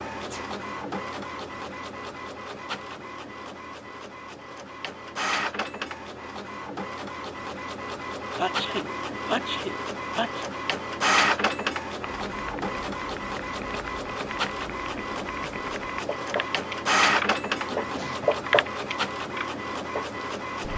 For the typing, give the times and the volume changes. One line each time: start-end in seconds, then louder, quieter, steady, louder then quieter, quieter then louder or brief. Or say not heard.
12.1-20.7 louder then quieter.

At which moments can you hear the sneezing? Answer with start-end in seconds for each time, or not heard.
0.1-0.5, 8.3-10.4, 17.7-18.3.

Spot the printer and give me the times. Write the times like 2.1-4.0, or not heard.
0.0-20.7.